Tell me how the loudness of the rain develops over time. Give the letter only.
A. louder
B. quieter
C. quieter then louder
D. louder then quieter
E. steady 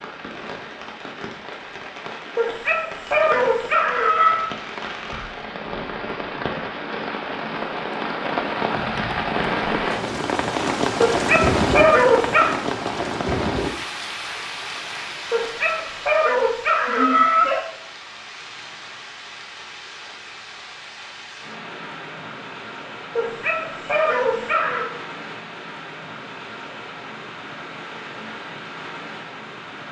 D.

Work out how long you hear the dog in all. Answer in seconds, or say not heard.
8 s.